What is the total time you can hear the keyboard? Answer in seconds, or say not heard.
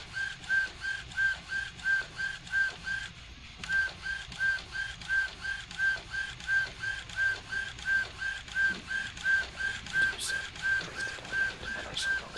not heard.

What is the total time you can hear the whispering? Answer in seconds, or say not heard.
2 s.